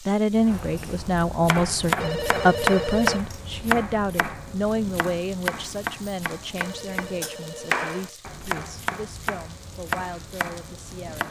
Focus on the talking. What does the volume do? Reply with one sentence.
The volume of the talking goes down.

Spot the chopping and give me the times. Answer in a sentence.
The chopping can be heard from 0.3 to 11.2 s.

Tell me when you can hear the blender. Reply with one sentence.
You can't hear the blender here.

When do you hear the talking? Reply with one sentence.
The talking can be heard from 0.0 to 11.2 s.